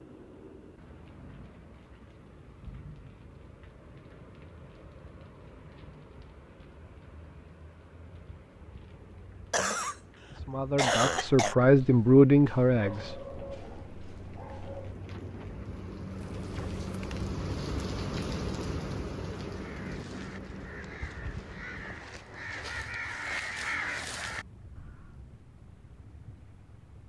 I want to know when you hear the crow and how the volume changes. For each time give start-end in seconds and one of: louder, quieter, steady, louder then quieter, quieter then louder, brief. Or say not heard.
19.5-25.1 louder.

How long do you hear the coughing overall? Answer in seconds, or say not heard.
3 s.